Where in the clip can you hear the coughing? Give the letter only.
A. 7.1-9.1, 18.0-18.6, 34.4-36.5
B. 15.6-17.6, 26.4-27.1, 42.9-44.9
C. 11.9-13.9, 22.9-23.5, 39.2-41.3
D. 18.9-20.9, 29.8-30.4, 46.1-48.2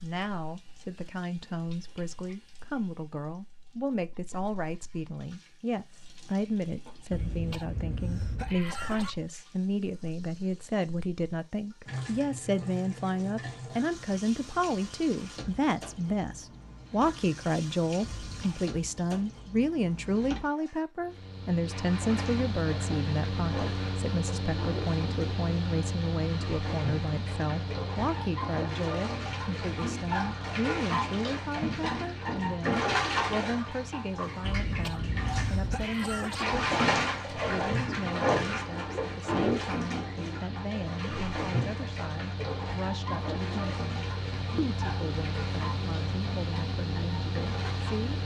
A.